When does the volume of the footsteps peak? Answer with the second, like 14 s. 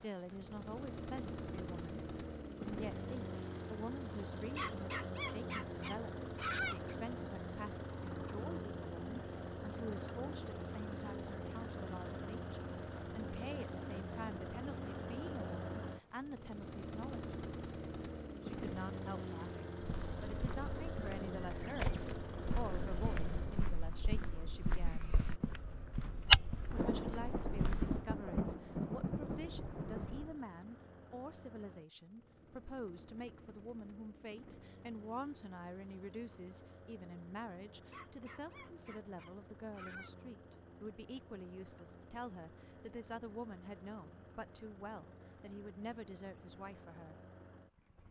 26 s.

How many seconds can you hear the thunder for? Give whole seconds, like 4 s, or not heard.
4 s.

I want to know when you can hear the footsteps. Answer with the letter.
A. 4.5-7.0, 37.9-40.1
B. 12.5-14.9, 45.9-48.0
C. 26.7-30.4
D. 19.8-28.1
D.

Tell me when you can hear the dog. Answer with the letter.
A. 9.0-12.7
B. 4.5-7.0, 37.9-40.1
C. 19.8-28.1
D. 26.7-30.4
B.